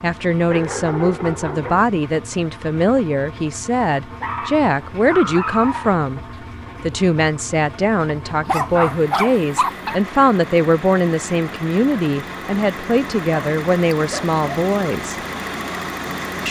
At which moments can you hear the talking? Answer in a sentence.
You can hear the talking from 0.0 to 6.2 s and from 6.8 to 15.2 s.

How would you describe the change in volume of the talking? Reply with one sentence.
The loudness of the talking stays about the same.